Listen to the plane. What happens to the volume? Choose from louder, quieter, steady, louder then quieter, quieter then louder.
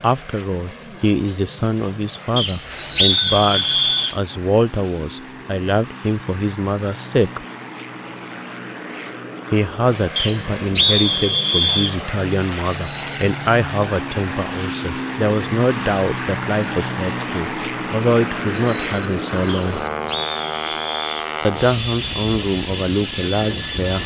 louder.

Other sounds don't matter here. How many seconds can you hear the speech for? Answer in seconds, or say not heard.
20 s.